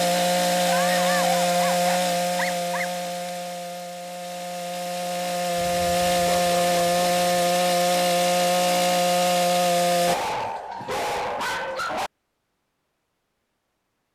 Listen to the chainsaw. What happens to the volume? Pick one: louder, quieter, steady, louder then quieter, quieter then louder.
quieter then louder.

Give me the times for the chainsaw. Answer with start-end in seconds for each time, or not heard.
0.0-10.2.